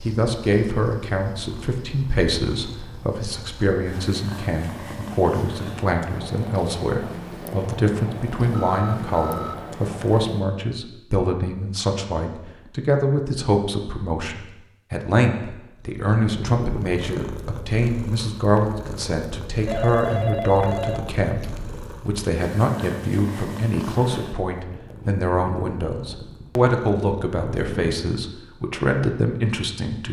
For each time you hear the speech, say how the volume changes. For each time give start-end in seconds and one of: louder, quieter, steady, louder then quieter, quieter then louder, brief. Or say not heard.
0.1-30.0 steady.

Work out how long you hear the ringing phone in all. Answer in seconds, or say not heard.
3 s.